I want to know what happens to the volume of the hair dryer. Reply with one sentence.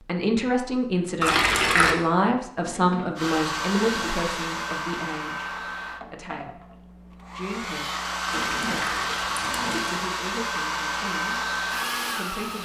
The loudness of the hair dryer goes down, then up.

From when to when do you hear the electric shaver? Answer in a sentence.
The electric shaver can't be heard in this clip.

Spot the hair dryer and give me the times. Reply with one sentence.
You can hear the hair dryer from 3.1 to 12.5 s.